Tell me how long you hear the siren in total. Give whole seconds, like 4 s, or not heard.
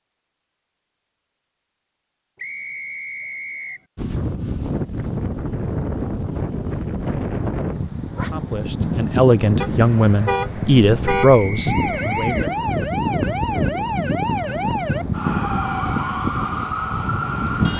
6 s.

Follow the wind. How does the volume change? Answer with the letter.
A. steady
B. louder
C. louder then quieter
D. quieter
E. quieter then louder
A.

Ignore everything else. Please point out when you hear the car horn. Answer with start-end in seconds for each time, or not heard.
9.6-11.3.